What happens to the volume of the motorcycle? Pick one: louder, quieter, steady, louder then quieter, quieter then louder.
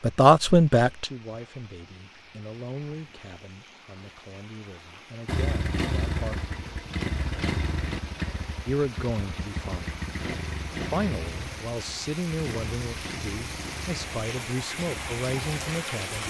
quieter.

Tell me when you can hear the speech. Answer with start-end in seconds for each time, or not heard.
0.0-6.3, 8.7-9.9, 10.9-16.2.